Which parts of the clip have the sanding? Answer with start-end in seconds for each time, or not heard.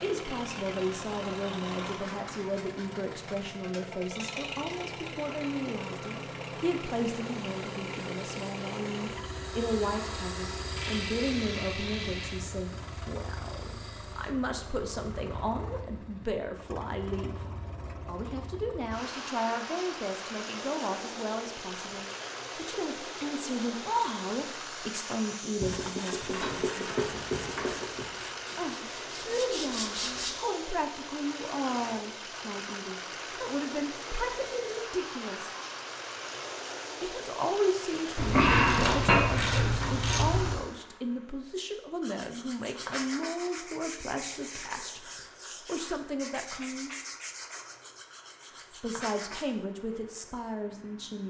7.0-14.3, 25.6-30.4, 42.0-49.5.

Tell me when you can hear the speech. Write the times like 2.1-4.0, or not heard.
0.0-17.4, 18.1-26.9, 28.6-35.5, 37.0-46.9, 48.8-51.2.